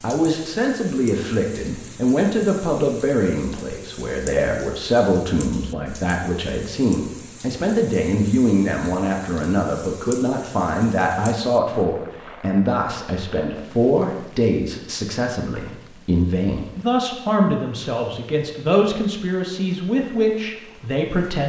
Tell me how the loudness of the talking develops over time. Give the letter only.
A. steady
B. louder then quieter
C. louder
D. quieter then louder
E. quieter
A.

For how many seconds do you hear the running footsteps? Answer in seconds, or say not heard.
not heard.